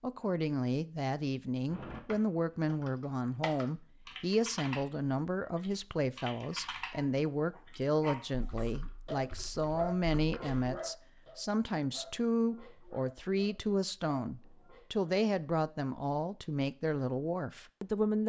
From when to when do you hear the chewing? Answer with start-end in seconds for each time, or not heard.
not heard.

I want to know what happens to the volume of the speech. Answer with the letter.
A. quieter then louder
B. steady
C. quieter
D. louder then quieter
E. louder
B.